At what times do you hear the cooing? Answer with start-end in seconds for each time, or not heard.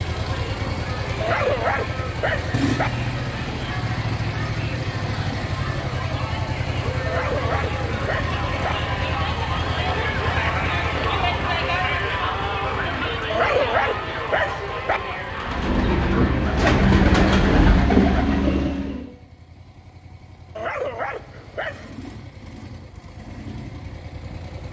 15.3-19.1.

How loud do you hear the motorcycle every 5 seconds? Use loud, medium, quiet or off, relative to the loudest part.
loud, loud, medium, quiet, quiet.